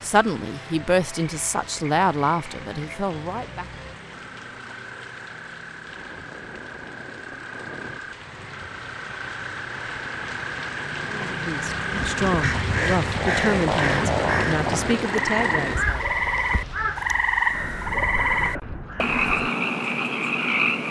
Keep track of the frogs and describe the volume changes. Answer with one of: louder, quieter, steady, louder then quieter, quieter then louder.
louder.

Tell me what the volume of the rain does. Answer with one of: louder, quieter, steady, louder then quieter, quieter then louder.
louder.